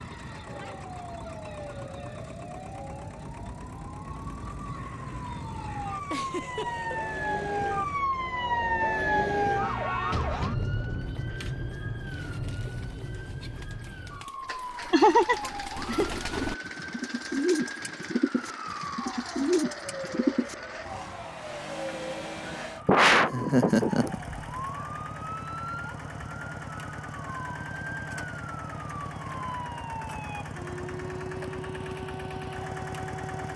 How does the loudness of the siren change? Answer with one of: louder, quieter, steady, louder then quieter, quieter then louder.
louder then quieter.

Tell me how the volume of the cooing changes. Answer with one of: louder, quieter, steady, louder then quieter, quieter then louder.
louder.